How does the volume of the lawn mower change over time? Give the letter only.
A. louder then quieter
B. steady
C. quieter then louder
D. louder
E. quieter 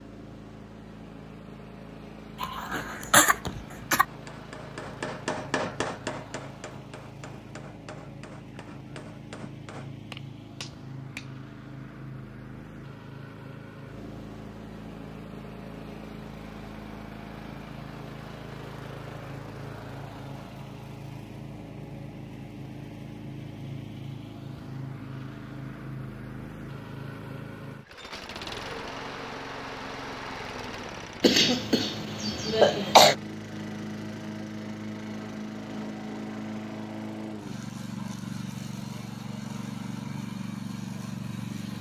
D.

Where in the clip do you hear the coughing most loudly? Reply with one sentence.
The loudest moment of the coughing is at 33 seconds.